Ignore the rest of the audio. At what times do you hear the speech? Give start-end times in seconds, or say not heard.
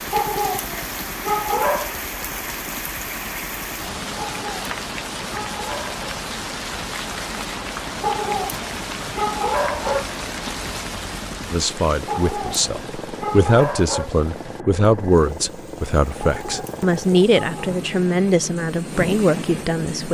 11.5-20.0.